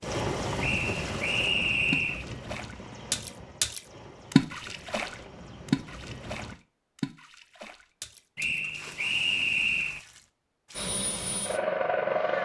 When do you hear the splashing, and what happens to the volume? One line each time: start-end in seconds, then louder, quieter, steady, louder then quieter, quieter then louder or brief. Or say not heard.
0.0-11.3 louder then quieter.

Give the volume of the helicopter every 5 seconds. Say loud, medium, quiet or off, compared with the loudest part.
medium, quiet, loud.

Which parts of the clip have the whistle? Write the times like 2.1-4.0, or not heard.
0.6-2.2, 8.3-10.0.